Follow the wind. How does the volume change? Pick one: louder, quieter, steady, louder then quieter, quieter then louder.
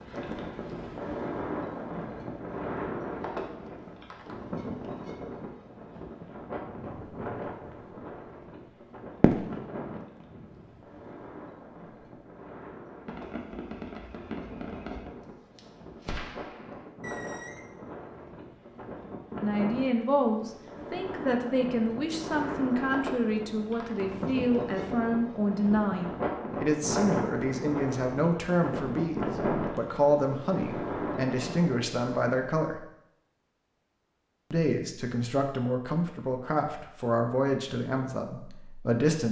quieter then louder.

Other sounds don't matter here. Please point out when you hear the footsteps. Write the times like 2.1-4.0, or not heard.
not heard.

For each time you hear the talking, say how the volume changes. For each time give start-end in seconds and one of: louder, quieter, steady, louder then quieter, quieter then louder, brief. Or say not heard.
19.4-32.8 steady
34.5-39.2 quieter.